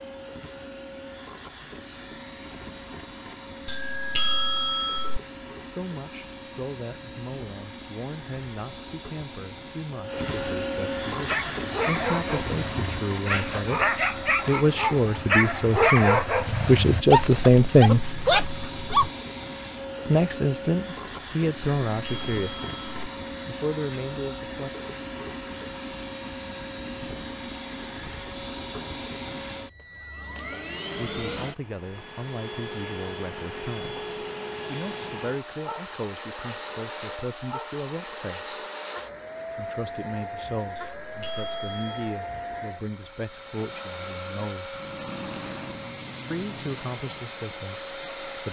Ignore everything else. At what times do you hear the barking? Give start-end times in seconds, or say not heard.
11.2-19.1.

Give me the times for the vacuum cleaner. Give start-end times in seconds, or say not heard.
0.0-48.4.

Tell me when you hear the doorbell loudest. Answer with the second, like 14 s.
4 s.